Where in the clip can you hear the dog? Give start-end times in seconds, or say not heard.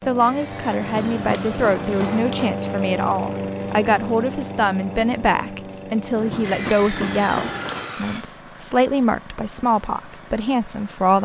not heard.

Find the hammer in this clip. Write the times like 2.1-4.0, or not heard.
0.8-2.5, 6.2-8.0.